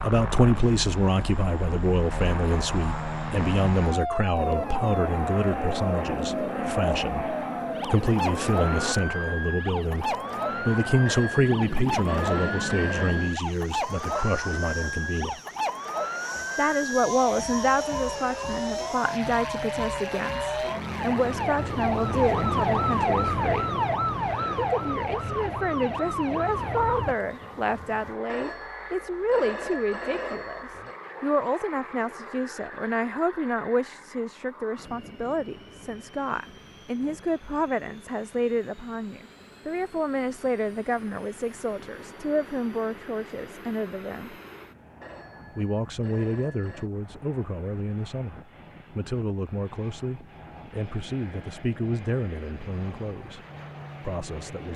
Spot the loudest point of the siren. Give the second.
23 s.